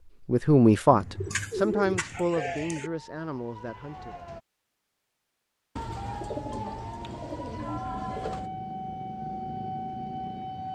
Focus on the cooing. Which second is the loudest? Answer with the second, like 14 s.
2 s.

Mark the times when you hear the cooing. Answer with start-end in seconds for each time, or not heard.
0.9-2.9, 5.8-8.5.